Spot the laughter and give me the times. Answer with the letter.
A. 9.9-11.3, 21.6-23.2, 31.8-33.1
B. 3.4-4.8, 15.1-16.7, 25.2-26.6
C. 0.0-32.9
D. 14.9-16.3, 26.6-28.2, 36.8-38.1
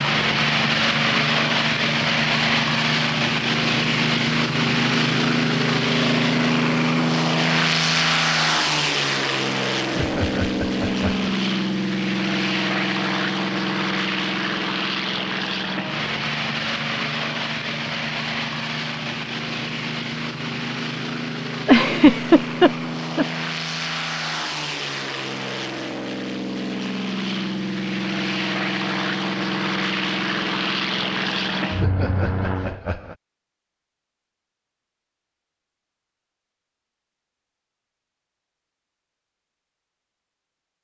A.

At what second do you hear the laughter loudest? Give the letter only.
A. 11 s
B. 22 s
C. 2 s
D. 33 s
B.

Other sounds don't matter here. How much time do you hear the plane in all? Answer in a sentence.
You can hear the plane for 33 seconds altogether.